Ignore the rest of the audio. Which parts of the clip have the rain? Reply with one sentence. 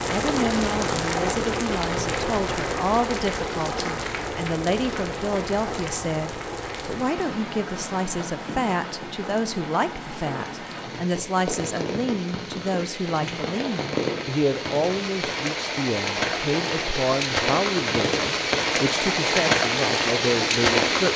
You can hear the rain from 0.0 to 21.1 s.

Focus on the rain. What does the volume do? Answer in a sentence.
The volume of the rain goes down, then up.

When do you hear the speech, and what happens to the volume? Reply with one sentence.
You can hear the speech from 0.1 to 21.1 s, at a steady volume.